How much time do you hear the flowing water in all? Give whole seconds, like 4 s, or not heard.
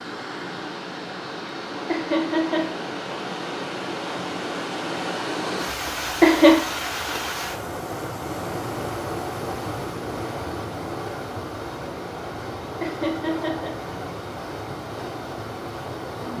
16 s.